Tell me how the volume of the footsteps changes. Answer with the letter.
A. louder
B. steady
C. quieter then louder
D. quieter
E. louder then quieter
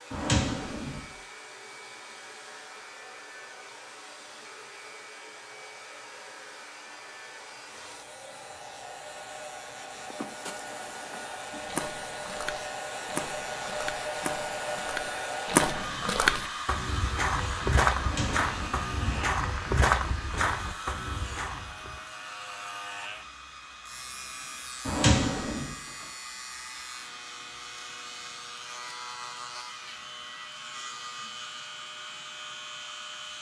A.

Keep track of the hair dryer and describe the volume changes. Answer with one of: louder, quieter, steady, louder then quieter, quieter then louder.
louder then quieter.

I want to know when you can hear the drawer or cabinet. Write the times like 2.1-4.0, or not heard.
0.1-1.1, 17.9-19.2, 24.9-25.7.